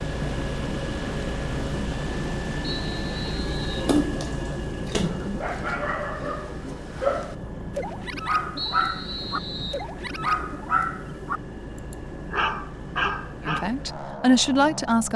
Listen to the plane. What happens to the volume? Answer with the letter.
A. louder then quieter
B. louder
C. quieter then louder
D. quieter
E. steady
D.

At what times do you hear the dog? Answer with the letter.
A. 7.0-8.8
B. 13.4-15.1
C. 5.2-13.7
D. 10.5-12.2
C.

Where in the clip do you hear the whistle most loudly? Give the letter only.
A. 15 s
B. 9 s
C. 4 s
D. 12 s
B.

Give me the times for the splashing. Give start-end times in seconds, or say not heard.
3.9-5.5.